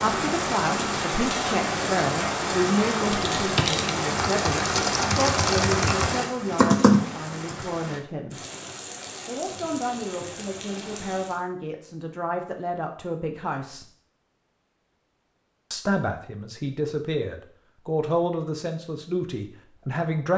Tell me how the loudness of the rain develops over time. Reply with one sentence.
The volume of the rain goes down.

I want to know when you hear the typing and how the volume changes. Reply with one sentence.
You can hear the typing from 3.1 to 7.7 s, getting louder.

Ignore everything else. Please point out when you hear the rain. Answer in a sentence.
You can hear the rain from 0.0 to 11.4 s.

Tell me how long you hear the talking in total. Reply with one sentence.
The talking can be heard for 18 seconds in total.